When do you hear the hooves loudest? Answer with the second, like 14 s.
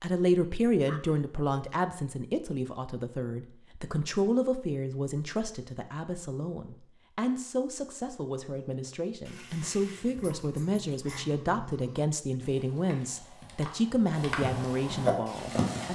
15 s.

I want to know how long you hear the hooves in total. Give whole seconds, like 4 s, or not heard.
6 s.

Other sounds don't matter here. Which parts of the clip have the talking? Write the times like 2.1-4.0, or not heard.
0.0-15.9.